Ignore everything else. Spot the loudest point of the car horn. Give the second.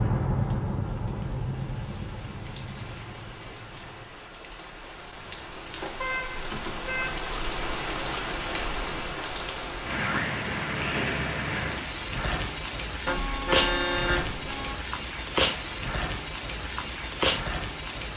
14 s.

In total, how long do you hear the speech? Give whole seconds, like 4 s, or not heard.
not heard.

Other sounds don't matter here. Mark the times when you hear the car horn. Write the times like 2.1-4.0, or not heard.
5.7-7.2, 13.1-14.8.